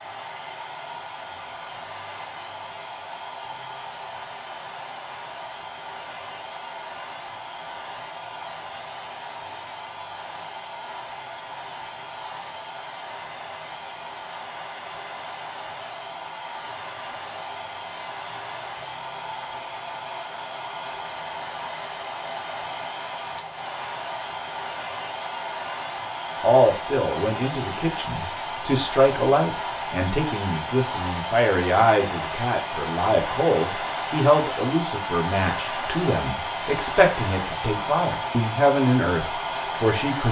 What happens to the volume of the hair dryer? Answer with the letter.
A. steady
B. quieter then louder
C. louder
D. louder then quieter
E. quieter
C.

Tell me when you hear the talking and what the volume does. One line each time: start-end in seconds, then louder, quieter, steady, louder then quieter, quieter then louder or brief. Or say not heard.
26.4-40.2 steady.